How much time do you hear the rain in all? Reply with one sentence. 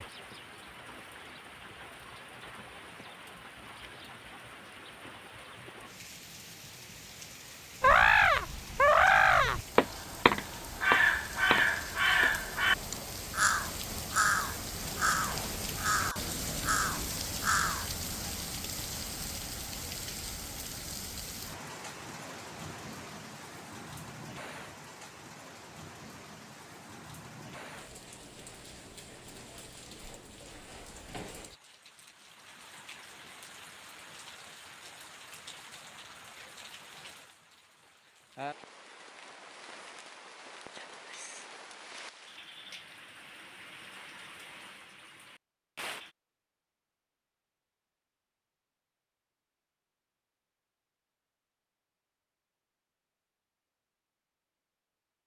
You can hear the rain for 46 seconds altogether.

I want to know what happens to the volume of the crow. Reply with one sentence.
The loudness of the crow goes down.